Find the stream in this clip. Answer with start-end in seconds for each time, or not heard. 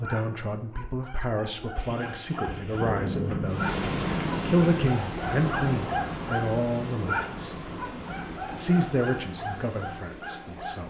3.5-10.8.